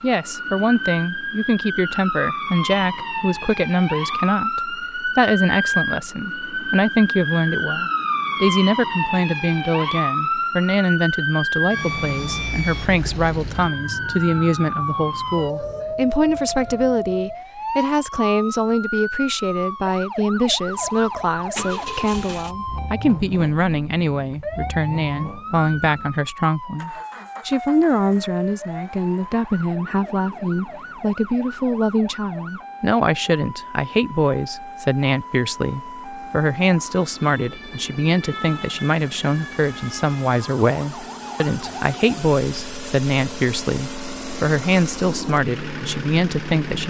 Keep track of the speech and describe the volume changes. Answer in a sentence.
The volume of the speech stays about the same.